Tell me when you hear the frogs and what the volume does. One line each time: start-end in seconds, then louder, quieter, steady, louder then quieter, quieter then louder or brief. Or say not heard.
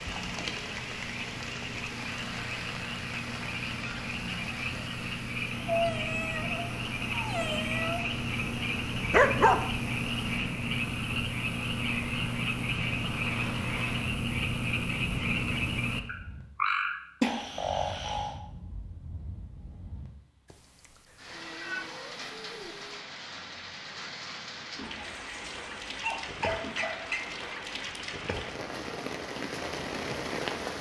0.0-18.4 louder.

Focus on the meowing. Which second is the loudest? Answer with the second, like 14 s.
6 s.